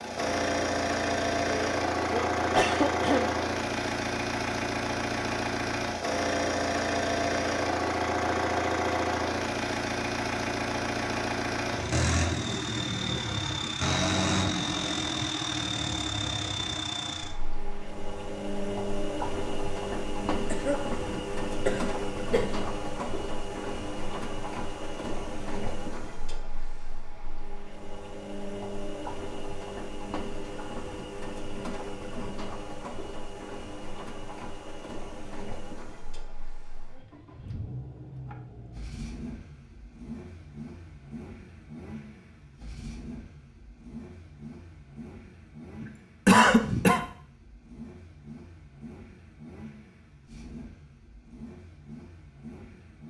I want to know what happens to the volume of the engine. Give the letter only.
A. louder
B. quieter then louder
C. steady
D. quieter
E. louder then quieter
D.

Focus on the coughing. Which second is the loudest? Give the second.
46 s.